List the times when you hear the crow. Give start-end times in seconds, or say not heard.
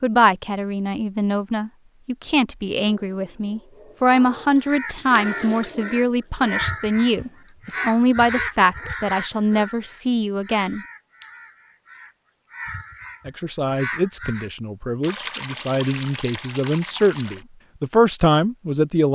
4.5-14.5.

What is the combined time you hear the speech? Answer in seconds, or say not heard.
17 s.